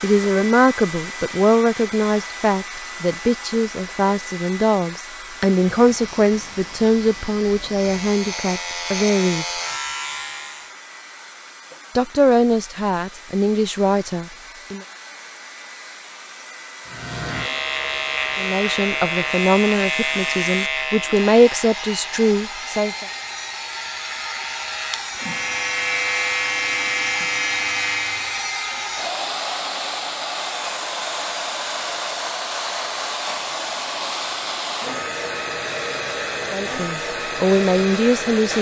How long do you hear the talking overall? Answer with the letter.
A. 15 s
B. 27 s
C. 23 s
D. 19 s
D.